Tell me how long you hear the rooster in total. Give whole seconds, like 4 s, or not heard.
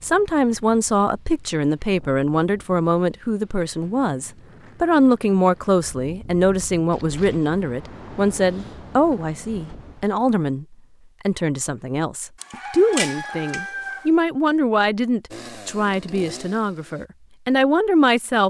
2 s.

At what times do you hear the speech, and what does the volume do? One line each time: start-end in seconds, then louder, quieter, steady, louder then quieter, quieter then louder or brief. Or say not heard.
0.0-18.4 steady.